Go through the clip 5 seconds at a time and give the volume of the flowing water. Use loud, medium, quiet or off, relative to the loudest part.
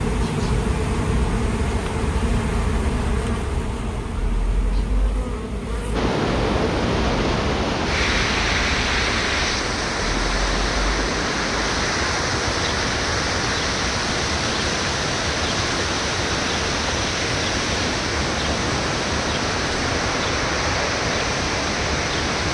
off, loud, loud, loud, loud.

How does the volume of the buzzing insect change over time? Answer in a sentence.
The loudness of the buzzing insect goes down.